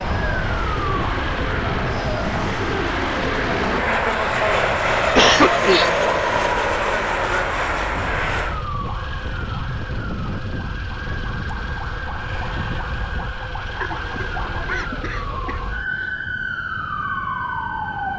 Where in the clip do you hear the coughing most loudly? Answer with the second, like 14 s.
5 s.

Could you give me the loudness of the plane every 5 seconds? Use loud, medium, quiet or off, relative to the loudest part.
loud, loud, off, off.